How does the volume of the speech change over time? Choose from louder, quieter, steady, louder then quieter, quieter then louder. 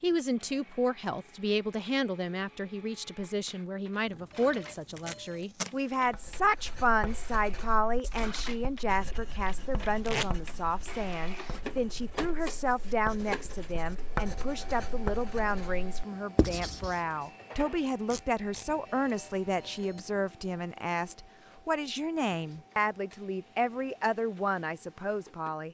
steady.